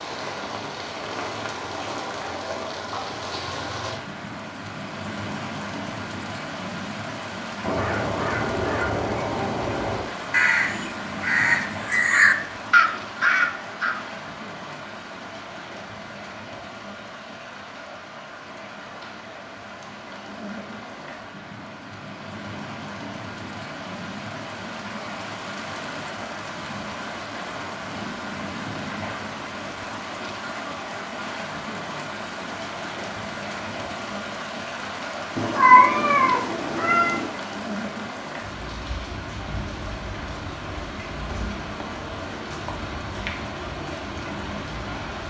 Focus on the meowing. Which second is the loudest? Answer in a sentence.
The loudest moment of the meowing is at 36 seconds.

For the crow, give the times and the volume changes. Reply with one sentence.
You can hear the crow from 7.6 to 13.9 s, getting louder.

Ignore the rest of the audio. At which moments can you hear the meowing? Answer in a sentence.
You can hear the meowing from 35.4 to 37.3 s.